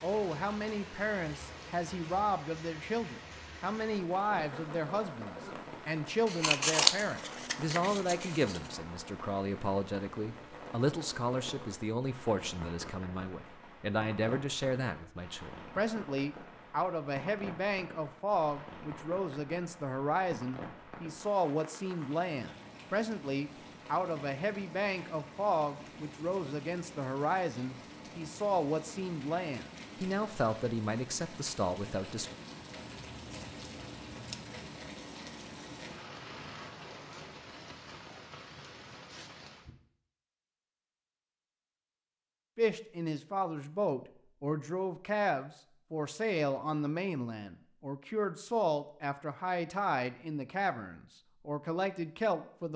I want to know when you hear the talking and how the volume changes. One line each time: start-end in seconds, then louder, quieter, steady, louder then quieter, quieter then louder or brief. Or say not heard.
0.0-32.3 steady
42.5-52.7 steady.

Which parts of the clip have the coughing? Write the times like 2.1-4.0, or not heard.
4.3-5.7.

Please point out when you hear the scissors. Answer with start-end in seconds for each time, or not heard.
6.2-8.7, 33.1-34.6.